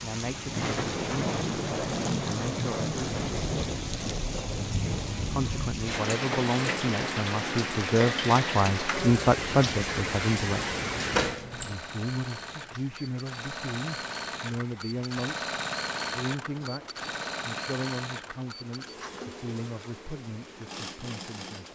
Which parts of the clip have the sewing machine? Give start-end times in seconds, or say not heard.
11.5-21.7.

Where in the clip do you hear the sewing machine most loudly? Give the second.
16 s.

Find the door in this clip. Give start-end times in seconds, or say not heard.
11.1-11.8.